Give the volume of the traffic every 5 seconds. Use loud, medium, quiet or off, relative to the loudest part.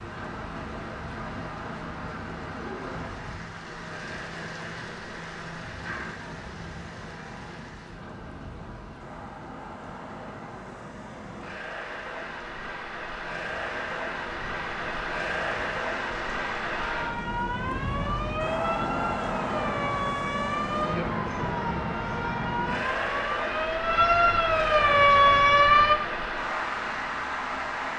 quiet, quiet, medium, loud, loud, loud.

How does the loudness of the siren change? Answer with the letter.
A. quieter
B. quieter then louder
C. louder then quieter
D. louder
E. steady
D.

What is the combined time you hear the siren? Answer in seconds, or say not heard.
9 s.